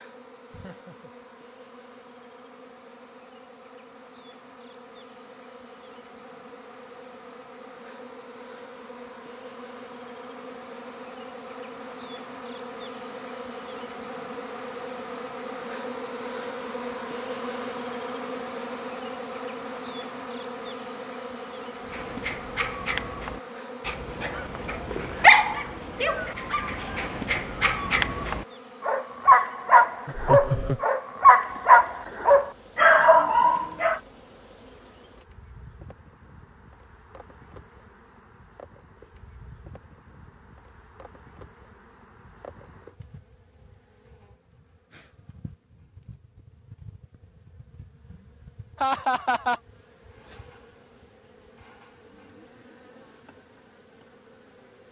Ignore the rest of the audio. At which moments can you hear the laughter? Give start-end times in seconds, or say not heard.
0.5-1.1, 30.1-30.9, 48.8-49.6.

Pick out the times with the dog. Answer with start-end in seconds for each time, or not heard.
21.9-34.0.